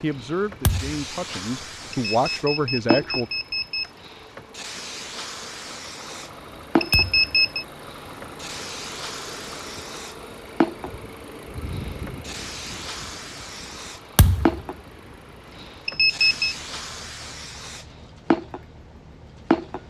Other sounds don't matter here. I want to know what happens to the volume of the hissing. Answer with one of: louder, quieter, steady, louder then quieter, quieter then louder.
steady.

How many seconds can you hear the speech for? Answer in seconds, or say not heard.
3 s.